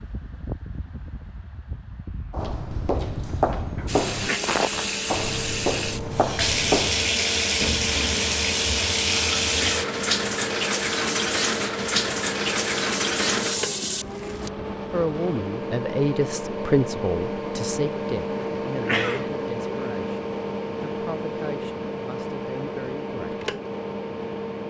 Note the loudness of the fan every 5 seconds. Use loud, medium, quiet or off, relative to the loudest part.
medium, medium, loud, loud, loud.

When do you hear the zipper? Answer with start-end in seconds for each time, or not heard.
not heard.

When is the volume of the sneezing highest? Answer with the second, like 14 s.
19 s.